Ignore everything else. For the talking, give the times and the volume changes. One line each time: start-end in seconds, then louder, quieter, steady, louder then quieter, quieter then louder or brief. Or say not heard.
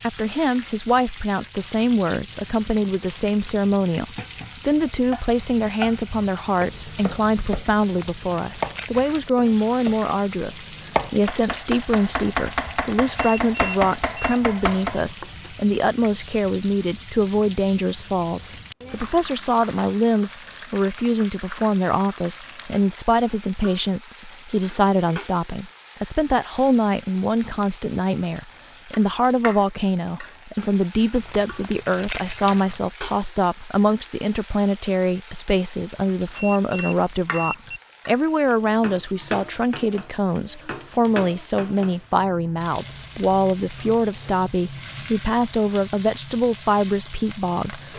0.0-47.9 steady.